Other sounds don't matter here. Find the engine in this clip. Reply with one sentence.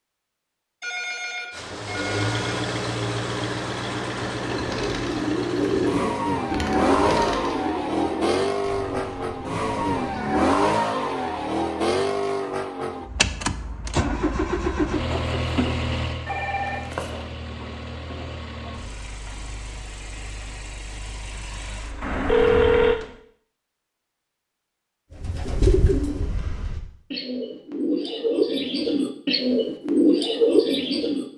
You can hear the engine from 1.5 to 23.2 s.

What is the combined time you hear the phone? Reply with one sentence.
You can hear the phone for 4 seconds altogether.